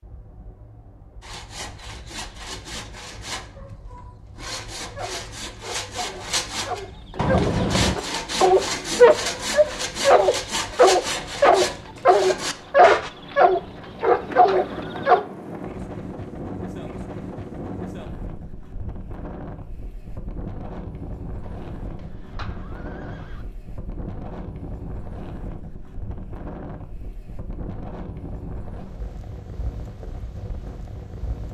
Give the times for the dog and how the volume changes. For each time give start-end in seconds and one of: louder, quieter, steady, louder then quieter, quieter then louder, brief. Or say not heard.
5.0-15.2 louder.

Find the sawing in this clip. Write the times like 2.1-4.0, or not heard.
1.2-13.1.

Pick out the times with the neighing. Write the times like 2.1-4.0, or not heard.
7.2-8.0, 13.5-15.2, 21.4-23.4.